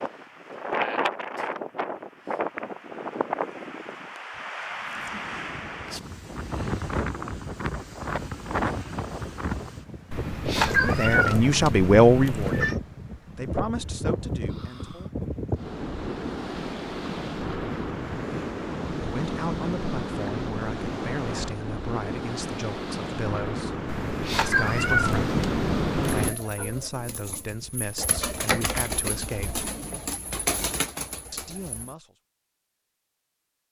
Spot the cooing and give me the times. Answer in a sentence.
You can hear the cooing from 26.1 to 31.9 s.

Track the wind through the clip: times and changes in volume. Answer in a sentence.
The wind can be heard from 0.0 to 26.3 s, at a steady volume.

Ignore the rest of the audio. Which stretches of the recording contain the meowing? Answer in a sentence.
The meowing can be heard from 10.1 to 12.8 s and from 23.9 to 26.4 s.